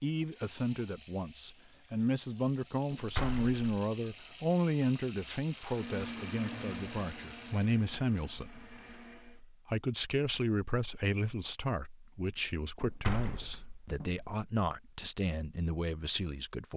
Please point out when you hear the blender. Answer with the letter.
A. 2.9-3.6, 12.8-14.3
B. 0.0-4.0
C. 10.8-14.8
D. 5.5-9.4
D.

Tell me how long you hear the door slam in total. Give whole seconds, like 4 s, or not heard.
2 s.